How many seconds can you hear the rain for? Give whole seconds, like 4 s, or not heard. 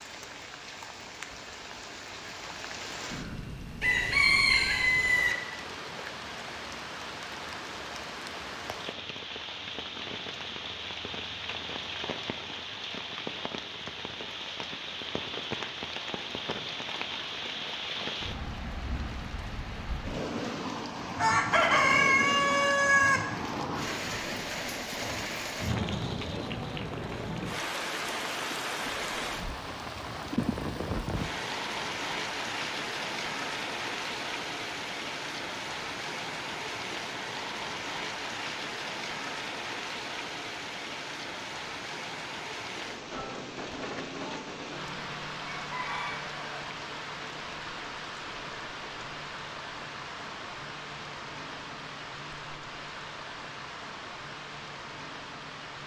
56 s.